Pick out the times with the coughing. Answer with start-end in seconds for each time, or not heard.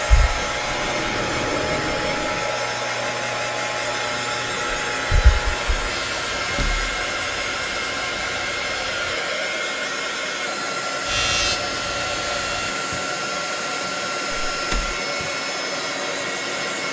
not heard.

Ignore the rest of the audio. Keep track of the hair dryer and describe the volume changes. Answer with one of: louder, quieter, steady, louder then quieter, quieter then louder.
steady.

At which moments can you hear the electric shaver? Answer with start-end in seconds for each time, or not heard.
0.0-9.2, 11.1-12.8.